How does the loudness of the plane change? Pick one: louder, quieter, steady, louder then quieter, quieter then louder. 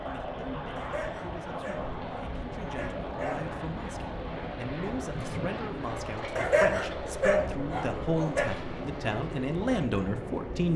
steady.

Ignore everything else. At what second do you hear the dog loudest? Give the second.
7 s.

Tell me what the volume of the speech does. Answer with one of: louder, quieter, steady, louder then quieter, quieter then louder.
louder.